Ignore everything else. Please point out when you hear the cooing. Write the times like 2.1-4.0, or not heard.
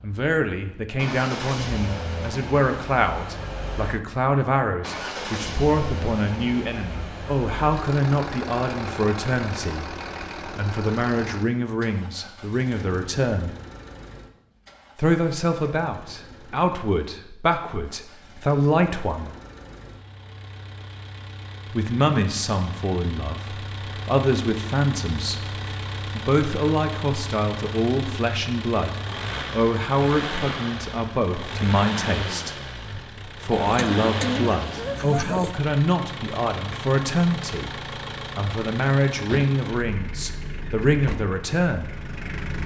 33.5-35.5.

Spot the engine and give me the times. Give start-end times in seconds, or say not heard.
0.0-42.6.